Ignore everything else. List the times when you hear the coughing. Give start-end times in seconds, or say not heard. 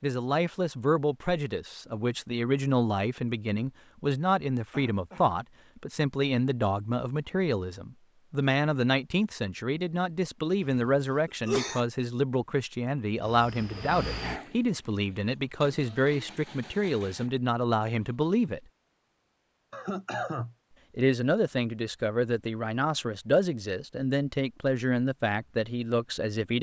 4.7-5.3, 10.7-11.8, 19.7-20.6.